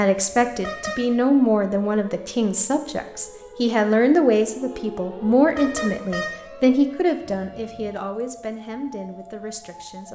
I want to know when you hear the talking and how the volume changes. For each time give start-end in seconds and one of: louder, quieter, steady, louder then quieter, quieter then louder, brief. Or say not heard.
0.0-10.0 quieter.